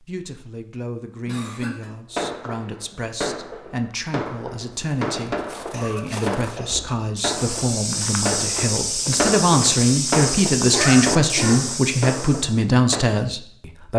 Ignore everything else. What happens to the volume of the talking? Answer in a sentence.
The volume of the talking goes up.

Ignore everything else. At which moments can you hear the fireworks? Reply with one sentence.
The fireworks can be heard from 2.1 to 13.1 s.